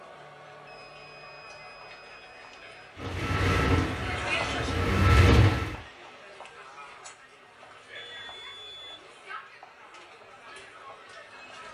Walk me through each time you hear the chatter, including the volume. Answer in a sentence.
You can hear the chatter from 0.0 to 11.6 s, getting louder then quieter.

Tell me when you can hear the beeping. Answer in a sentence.
You can hear the beeping from 0.7 to 2.8 s and from 8.0 to 9.1 s.